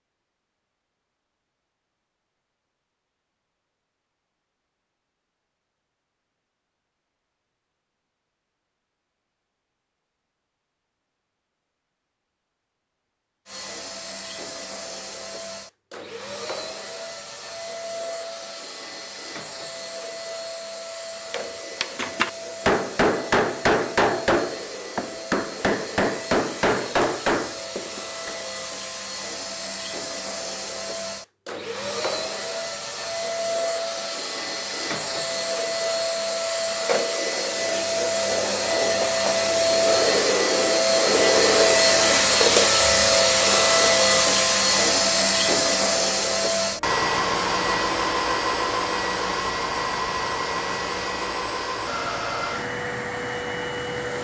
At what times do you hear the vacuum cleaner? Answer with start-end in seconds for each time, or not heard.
13.4-54.1.